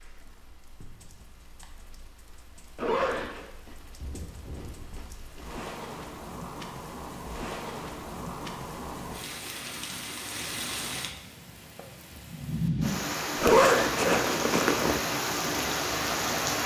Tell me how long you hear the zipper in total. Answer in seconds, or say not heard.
2 s.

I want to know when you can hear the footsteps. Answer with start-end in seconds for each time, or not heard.
not heard.